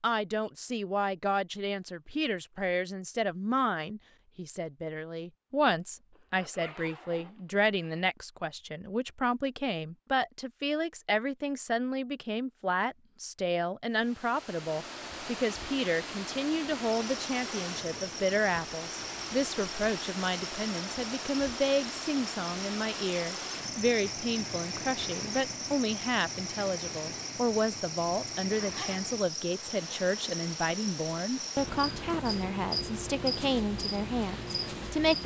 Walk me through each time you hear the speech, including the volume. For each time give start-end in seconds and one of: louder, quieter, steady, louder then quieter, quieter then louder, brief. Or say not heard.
0.0-35.2 steady.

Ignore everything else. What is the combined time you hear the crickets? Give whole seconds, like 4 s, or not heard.
18 s.